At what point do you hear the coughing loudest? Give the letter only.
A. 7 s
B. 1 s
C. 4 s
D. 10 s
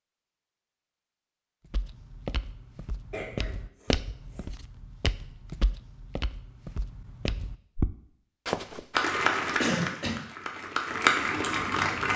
D.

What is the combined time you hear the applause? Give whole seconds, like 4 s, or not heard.
3 s.